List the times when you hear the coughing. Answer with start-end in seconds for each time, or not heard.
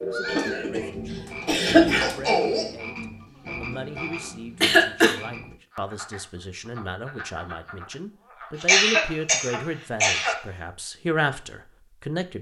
0.2-2.1, 4.6-5.2, 8.6-10.3.